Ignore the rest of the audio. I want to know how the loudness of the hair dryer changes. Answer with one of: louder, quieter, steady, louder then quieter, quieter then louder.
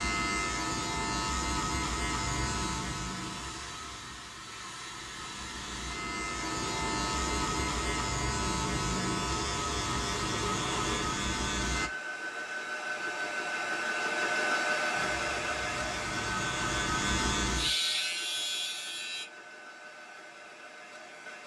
louder then quieter.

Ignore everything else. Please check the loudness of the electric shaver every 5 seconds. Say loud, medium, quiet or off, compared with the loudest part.
loud, loud, loud, loud, off.